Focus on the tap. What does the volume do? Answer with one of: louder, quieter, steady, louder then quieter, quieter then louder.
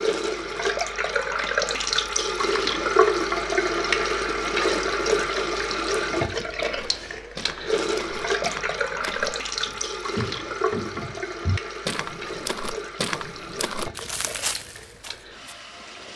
quieter.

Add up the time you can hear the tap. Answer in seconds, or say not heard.
16 s.